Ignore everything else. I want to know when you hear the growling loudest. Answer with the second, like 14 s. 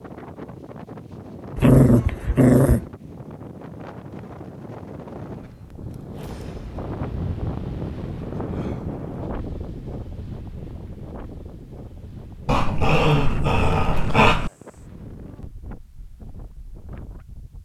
2 s.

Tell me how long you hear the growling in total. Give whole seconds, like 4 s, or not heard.
3 s.